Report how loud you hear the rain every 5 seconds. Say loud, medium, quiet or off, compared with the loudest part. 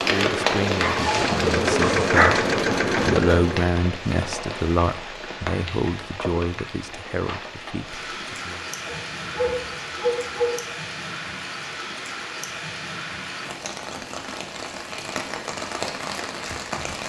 loud, medium, medium, loud.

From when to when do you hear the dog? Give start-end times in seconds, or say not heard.
0.8-2.5, 8.8-10.6.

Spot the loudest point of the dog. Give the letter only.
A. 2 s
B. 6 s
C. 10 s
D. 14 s
A.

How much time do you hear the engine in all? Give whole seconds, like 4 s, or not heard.
4 s.